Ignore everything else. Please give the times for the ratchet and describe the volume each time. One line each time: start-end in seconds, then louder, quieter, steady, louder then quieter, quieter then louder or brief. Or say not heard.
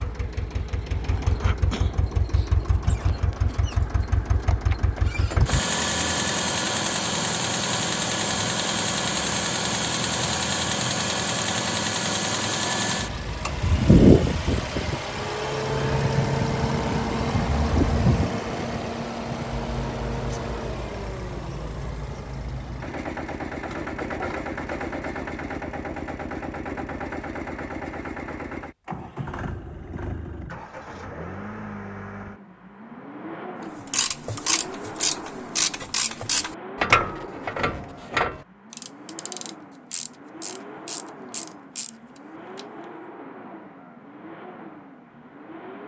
33.9-42.6 quieter.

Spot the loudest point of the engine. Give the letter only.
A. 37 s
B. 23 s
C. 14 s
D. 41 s
C.